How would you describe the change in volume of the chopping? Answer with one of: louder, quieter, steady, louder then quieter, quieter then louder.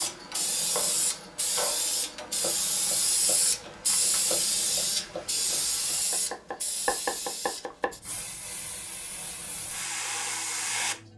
quieter then louder.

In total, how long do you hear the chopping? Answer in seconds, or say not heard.
8 s.